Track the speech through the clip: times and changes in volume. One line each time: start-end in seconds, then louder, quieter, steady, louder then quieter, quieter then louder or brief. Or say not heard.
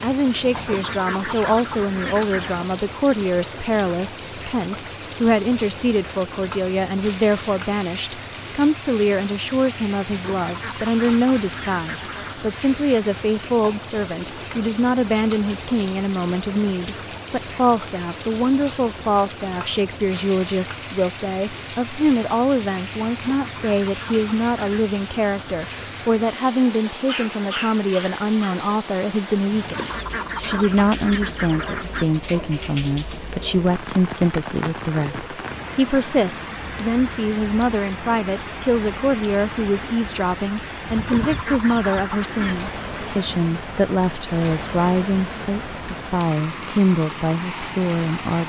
0.0-48.4 steady.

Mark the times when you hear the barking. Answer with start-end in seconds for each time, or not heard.
27.0-28.6.